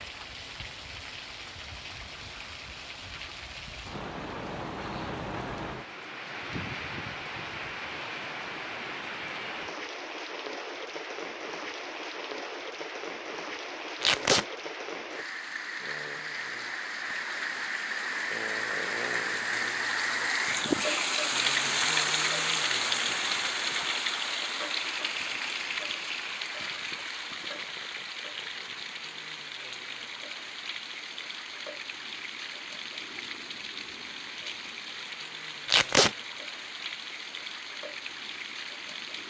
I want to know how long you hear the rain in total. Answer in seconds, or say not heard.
39 s.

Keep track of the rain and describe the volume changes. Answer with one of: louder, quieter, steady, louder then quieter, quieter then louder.
louder then quieter.